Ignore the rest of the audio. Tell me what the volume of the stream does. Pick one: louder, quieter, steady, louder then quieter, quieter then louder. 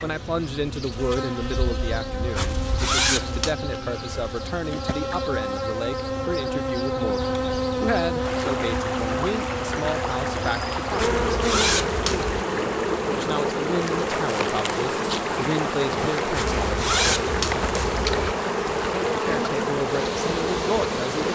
steady.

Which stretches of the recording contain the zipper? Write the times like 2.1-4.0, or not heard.
2.4-3.5, 10.9-12.3, 16.4-18.4.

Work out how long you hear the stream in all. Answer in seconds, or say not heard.
13 s.